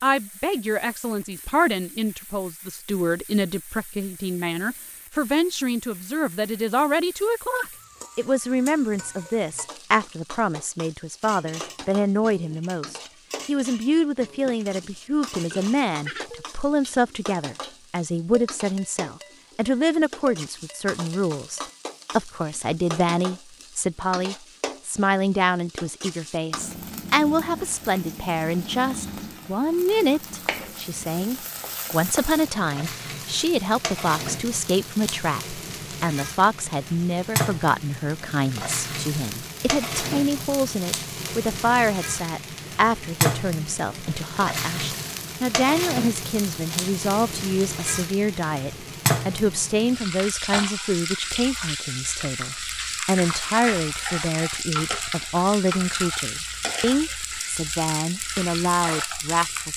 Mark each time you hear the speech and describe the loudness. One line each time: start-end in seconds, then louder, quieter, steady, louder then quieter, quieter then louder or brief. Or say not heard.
0.0-59.7 steady.